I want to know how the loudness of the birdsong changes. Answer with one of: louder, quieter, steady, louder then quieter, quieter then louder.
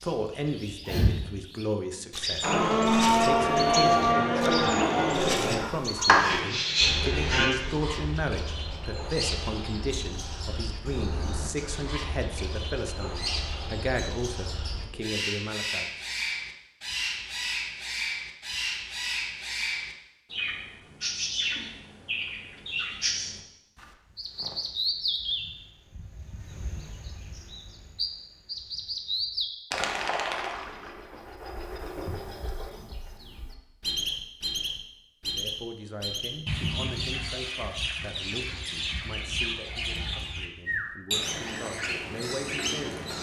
steady.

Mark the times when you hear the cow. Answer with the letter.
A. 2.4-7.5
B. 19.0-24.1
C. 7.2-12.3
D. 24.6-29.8
A.